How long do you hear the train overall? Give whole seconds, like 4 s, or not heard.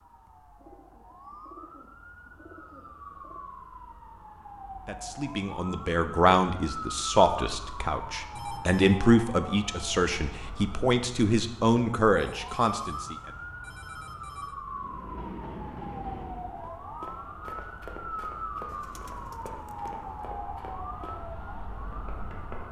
2 s.